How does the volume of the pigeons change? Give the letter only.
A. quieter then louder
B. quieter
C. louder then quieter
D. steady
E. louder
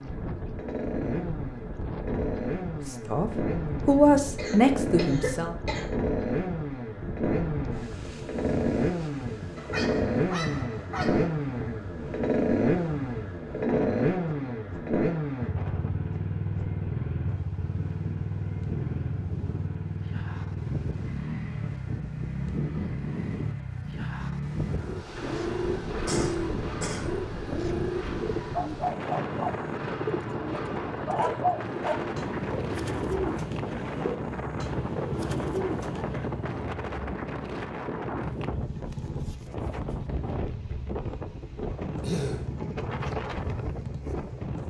D.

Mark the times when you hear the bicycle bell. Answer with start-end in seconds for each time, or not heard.
not heard.